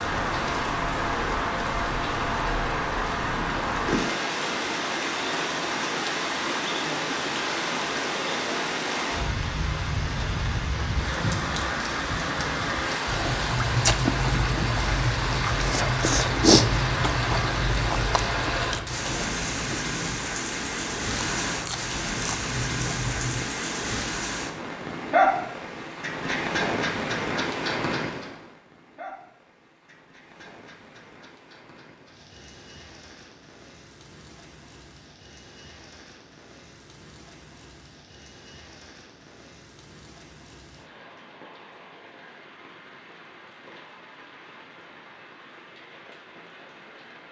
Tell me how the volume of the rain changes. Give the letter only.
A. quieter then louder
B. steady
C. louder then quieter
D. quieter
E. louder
D.